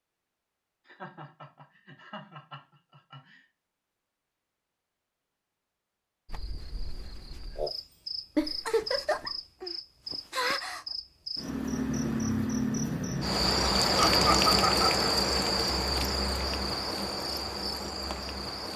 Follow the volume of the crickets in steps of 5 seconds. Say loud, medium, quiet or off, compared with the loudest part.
off, medium, loud, loud.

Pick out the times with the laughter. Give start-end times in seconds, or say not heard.
0.8-3.4, 8.3-9.3, 13.9-14.9.